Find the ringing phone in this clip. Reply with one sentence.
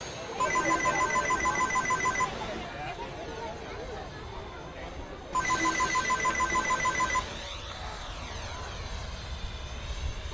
You can hear the ringing phone from 0.3 to 2.7 s and from 5.3 to 7.5 s.